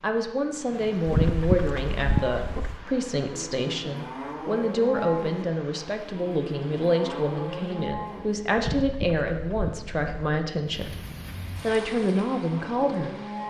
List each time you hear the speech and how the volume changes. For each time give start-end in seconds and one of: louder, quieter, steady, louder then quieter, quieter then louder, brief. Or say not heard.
0.0-10.9 steady
11.6-13.4 brief.